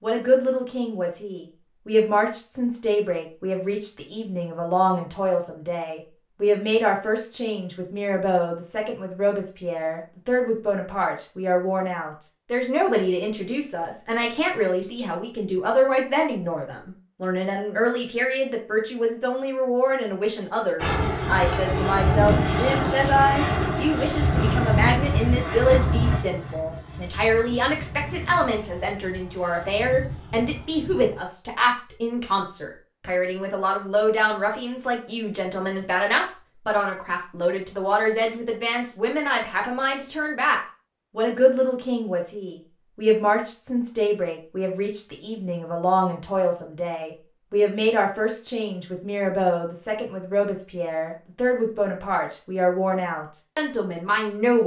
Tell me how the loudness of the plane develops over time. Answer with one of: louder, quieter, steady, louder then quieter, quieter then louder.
quieter.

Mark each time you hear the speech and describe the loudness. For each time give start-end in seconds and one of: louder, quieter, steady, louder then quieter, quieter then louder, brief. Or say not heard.
0.0-54.6 steady.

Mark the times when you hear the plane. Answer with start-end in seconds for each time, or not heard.
20.8-31.2.